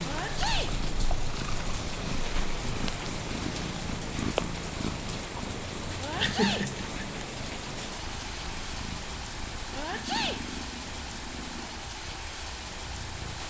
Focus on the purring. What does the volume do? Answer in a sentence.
The loudness of the purring goes down.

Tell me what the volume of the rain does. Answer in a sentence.
The loudness of the rain stays about the same.